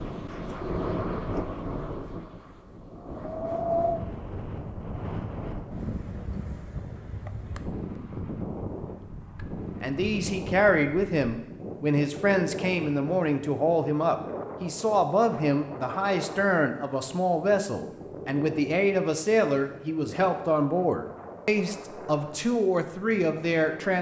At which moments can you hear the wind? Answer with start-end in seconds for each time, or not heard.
0.0-23.9.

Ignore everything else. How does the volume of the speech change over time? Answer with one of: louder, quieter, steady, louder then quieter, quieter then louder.
steady.